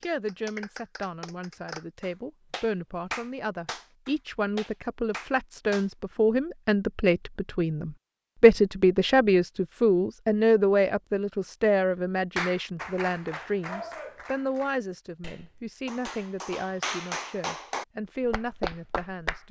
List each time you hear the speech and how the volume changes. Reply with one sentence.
The speech can be heard from 0.0 to 19.4 s, getting louder then quieter.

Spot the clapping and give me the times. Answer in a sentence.
The clapping can be heard from 0.0 to 5.9 s and from 12.3 to 19.4 s.